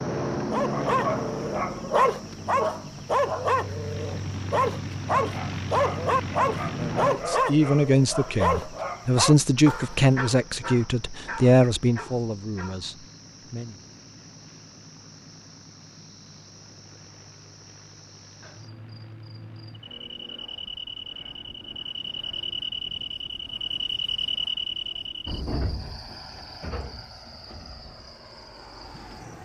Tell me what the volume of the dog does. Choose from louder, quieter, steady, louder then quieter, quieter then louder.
quieter.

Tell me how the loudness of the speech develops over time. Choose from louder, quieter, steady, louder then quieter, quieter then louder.
quieter.